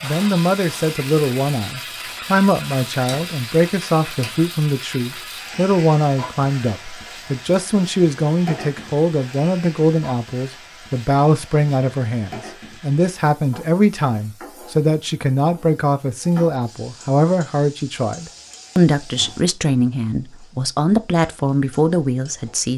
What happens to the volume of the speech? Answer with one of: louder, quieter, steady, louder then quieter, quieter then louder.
steady.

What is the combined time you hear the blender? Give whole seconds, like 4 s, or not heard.
not heard.